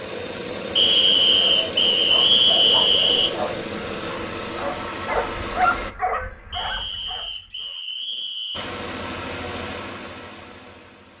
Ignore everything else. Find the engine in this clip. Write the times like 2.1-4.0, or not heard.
0.0-6.0, 8.5-11.1.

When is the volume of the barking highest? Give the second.
6 s.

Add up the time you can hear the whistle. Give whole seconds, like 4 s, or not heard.
5 s.